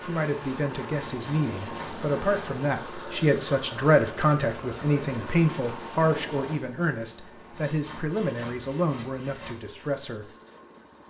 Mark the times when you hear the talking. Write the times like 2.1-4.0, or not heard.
0.0-10.2.